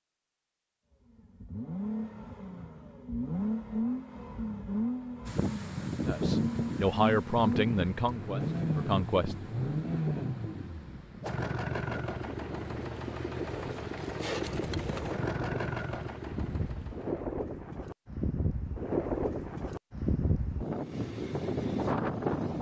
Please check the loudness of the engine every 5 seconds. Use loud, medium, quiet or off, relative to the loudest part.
loud, loud, loud, loud, off.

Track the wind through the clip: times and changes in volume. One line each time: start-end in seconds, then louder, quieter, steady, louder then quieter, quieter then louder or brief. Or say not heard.
5.2-22.5 quieter then louder.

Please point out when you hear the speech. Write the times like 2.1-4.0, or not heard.
6.0-9.3.